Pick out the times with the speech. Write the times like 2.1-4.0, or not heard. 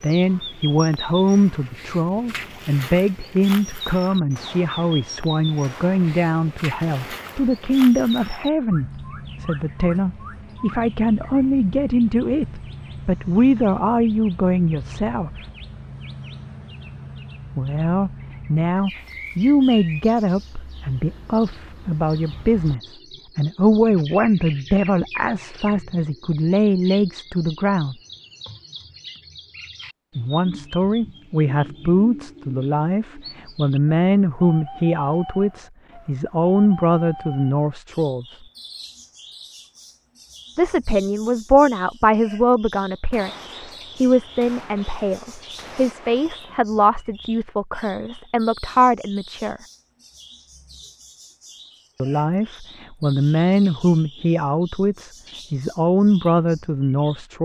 0.0-15.4, 17.6-27.9, 30.1-38.4, 40.5-49.6, 52.0-57.3.